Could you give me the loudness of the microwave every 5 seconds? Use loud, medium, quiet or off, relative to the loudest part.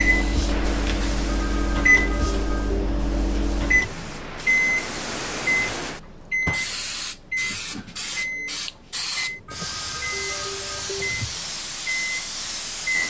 loud, medium, medium.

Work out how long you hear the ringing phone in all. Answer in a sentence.
You can hear the ringing phone for 4 seconds altogether.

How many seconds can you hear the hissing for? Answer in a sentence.
The hissing can be heard for 13 seconds in total.